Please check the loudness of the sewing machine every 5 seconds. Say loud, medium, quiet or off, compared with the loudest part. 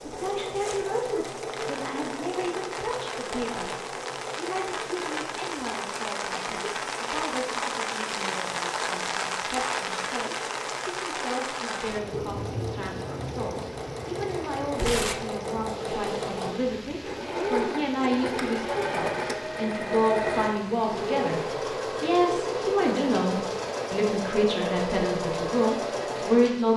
medium, quiet, medium, loud, loud, loud.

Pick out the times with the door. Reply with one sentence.
You can't hear the door here.